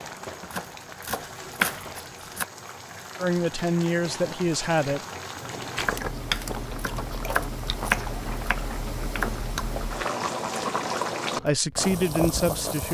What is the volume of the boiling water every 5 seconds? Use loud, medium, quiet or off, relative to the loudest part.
medium, medium, loud.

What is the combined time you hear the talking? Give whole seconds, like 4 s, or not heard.
3 s.